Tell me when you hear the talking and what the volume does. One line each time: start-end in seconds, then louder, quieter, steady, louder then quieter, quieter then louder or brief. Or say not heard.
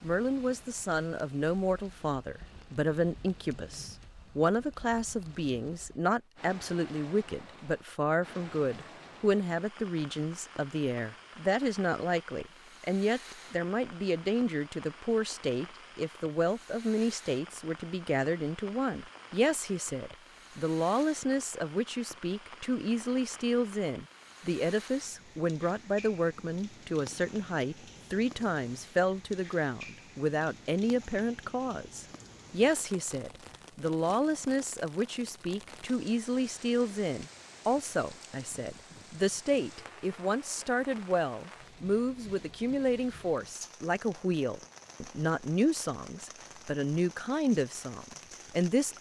0.0-48.9 steady.